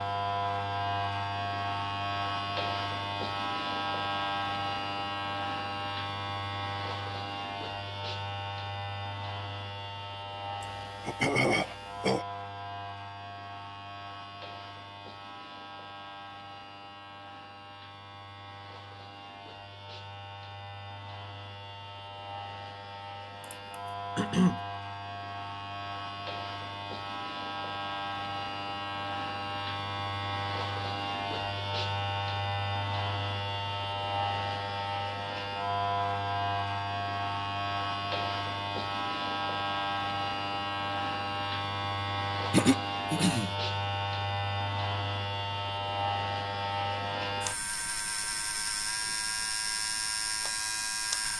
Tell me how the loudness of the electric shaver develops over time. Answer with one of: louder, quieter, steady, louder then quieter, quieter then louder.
quieter then louder.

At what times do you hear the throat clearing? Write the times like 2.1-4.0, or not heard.
10.6-12.2, 23.4-24.6, 42.5-43.5.